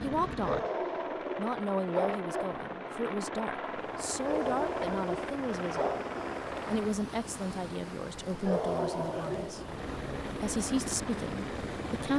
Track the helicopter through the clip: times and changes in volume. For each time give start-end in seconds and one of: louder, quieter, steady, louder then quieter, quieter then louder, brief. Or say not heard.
0.0-7.0 steady
9.6-12.1 brief.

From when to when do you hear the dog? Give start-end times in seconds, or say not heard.
0.4-2.5, 4.2-6.1, 8.4-9.7.